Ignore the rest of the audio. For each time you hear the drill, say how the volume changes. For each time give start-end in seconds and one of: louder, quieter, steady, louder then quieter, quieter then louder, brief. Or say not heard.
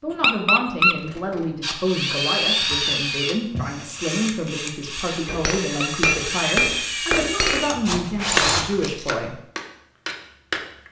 1.6-8.9 quieter then louder.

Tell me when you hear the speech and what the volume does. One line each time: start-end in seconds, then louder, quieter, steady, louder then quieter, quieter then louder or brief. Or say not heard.
0.0-9.4 steady.